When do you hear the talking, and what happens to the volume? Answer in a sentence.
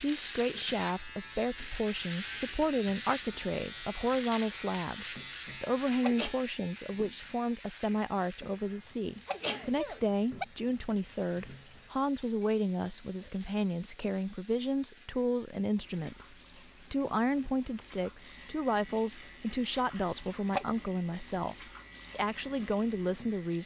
You can hear the talking from 0.0 to 23.6 s, at a steady volume.